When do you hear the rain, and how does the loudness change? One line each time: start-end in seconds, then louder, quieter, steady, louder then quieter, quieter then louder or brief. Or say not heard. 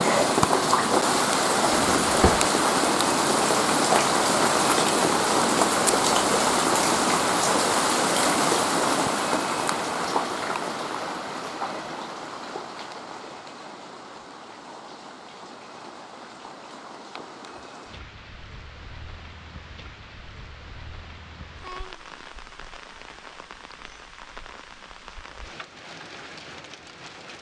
0.0-27.3 quieter.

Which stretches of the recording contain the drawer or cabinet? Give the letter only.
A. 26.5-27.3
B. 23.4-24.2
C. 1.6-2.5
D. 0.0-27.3
C.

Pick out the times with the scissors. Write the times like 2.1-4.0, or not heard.
not heard.